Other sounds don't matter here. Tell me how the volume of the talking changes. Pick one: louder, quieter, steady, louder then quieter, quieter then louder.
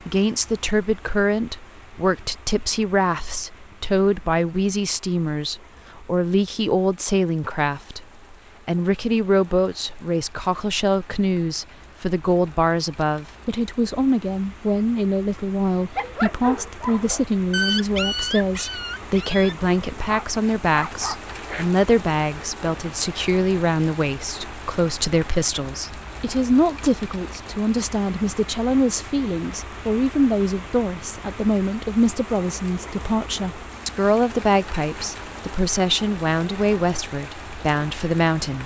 steady.